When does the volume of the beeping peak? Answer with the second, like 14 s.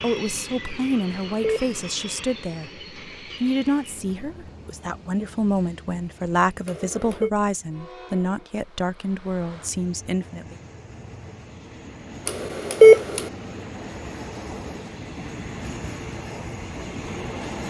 13 s.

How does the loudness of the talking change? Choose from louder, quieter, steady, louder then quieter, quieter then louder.
steady.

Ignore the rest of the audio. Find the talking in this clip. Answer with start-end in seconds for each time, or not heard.
0.0-10.6.